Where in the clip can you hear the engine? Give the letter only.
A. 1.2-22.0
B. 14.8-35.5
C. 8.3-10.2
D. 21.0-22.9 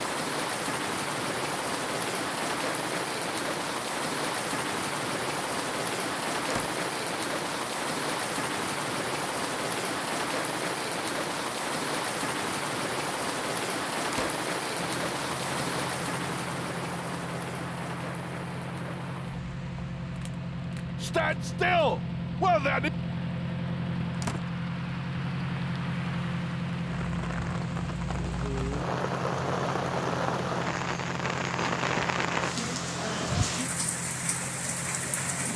B.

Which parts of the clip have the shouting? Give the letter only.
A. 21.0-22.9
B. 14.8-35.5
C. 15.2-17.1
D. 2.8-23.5
A.